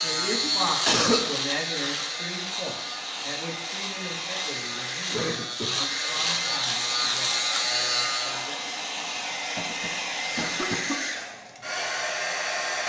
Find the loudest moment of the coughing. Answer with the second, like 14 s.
1 s.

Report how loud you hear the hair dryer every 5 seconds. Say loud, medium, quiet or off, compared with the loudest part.
medium, loud, loud.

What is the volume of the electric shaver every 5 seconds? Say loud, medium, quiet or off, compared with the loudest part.
loud, loud, off.